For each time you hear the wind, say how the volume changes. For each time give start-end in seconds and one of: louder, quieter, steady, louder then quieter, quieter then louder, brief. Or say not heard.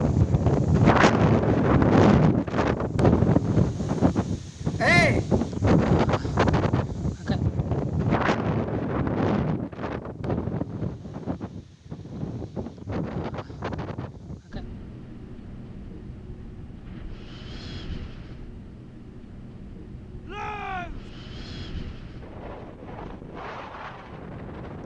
0.0-24.8 quieter.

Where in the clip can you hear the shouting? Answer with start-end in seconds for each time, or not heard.
4.8-5.2, 20.2-21.1.